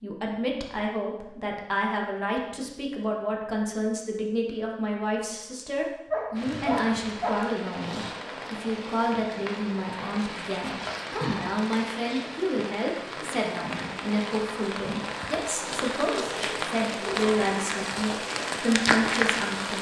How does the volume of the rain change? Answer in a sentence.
The loudness of the rain goes up.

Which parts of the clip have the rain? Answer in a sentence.
You can hear the rain from 6.3 to 19.7 s.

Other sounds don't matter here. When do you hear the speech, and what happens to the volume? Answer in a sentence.
The speech can be heard from 0.0 to 19.7 s, at a steady volume.